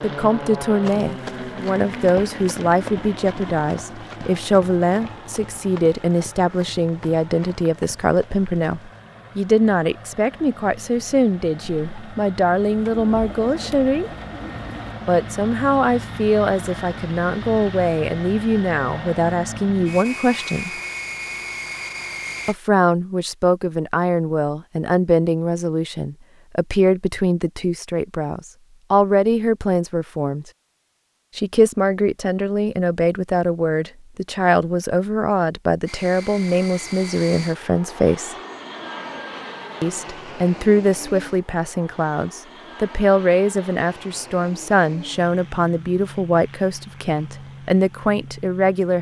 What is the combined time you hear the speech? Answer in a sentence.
The speech can be heard for 44 seconds in total.